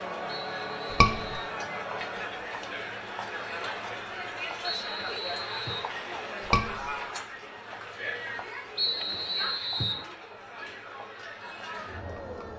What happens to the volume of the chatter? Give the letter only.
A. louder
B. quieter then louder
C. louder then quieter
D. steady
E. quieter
E.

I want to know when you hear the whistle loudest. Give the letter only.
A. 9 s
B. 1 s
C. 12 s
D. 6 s
A.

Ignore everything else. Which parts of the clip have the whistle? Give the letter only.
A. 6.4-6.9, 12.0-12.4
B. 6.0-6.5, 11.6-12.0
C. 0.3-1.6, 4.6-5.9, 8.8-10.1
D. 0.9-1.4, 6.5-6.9
C.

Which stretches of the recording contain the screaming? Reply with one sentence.
The screaming can be heard from 0.9 to 1.4 s and from 6.5 to 6.9 s.